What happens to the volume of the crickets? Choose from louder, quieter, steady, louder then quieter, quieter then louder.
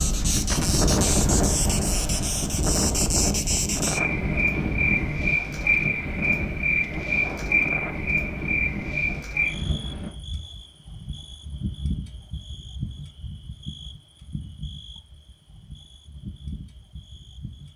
quieter.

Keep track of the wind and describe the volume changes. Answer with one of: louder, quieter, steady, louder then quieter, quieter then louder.
quieter.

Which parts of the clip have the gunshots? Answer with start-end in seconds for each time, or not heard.
0.5-2.7.